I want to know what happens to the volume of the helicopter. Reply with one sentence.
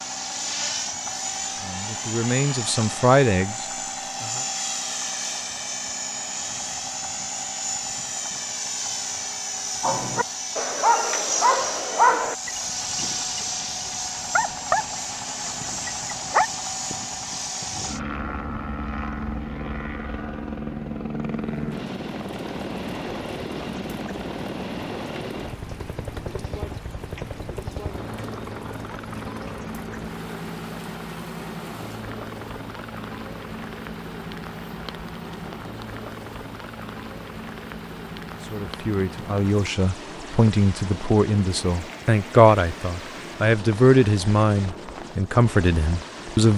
The loudness of the helicopter goes down.